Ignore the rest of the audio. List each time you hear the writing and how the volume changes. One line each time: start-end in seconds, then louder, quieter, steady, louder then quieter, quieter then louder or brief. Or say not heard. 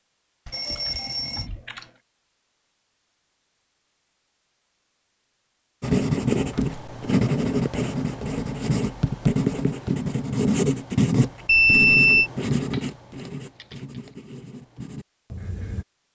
5.8-15.8 quieter.